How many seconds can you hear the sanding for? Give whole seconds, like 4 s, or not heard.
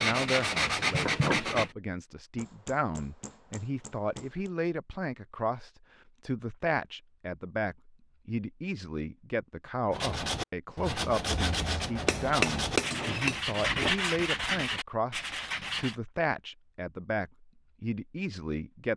8 s.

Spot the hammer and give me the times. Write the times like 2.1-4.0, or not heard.
2.4-4.5, 12.1-13.9.